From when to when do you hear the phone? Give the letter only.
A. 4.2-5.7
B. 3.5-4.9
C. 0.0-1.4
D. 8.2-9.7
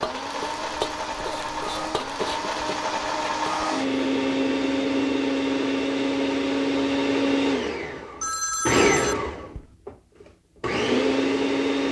D.